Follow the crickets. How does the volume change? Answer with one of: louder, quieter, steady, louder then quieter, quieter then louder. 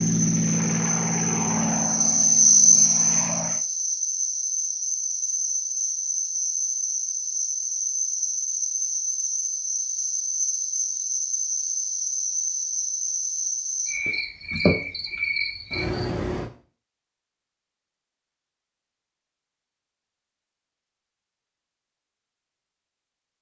quieter.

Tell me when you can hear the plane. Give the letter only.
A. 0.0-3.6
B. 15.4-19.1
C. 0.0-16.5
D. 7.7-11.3
A.